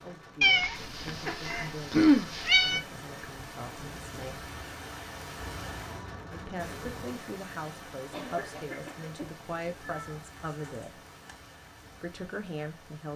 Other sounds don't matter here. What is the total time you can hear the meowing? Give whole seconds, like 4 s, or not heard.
6 s.